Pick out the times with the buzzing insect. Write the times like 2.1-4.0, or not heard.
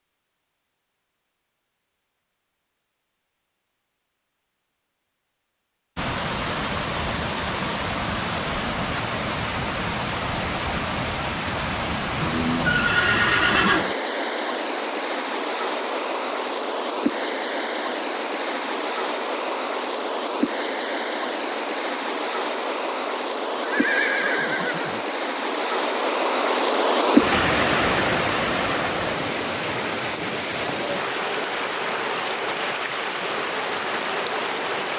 not heard.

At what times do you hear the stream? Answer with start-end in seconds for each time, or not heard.
6.0-34.9.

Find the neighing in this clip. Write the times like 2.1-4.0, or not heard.
12.2-13.9, 23.6-25.0.